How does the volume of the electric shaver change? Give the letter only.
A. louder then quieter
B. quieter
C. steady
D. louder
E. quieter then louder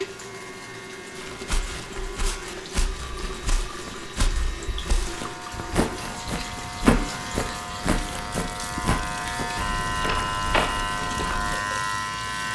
D.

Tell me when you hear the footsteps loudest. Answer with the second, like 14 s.
7 s.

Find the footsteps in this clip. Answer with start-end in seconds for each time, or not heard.
1.2-11.6.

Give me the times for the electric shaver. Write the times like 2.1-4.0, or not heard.
0.0-12.4.